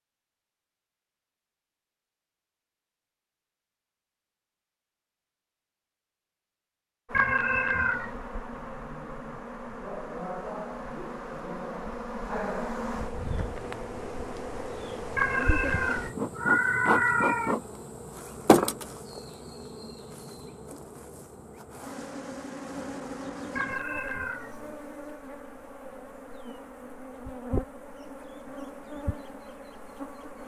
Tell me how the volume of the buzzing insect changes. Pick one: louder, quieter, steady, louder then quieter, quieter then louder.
louder then quieter.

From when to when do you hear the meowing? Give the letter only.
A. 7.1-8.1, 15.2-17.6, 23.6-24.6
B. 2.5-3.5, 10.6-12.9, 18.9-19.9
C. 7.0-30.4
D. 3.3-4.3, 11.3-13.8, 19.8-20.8
A.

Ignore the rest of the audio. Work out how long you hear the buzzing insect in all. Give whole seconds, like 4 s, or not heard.
23 s.